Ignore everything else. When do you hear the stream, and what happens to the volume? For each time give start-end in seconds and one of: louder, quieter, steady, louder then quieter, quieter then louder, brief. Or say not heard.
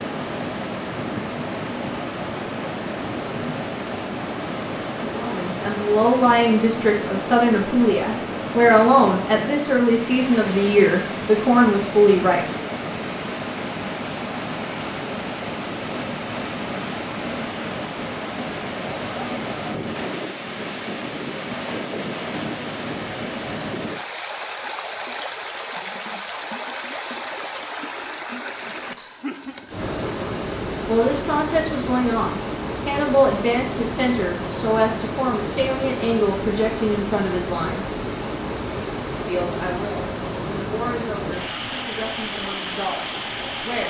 0.0-43.8 steady.